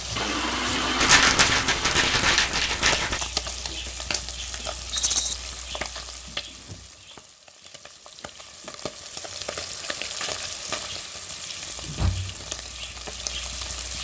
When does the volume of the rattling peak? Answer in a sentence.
The volume of the rattling peaks at 1 second.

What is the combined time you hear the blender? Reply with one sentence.
You can hear the blender for 2 seconds altogether.